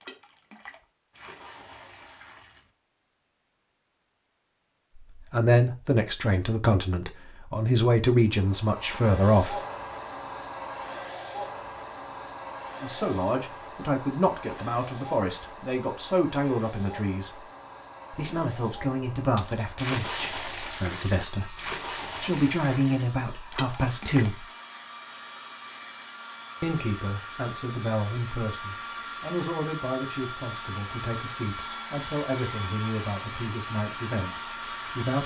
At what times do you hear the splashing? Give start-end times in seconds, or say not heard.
0.0-2.7, 19.4-24.4.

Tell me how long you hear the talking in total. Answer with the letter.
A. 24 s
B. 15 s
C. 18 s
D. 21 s
A.